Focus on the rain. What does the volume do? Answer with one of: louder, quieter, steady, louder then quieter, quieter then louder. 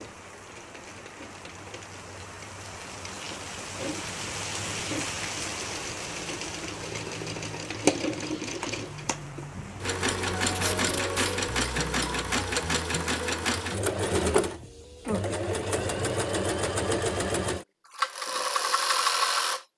louder then quieter.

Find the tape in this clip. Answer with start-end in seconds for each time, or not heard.
10.5-11.4.